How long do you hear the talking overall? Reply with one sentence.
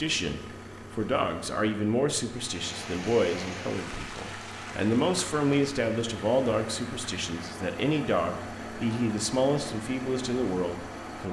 The talking can be heard for 11 seconds in total.